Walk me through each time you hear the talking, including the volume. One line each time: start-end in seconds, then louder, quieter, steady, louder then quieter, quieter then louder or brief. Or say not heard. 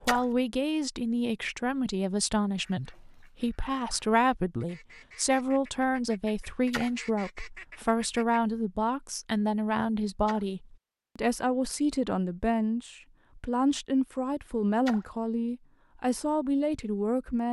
0.0-17.4 steady.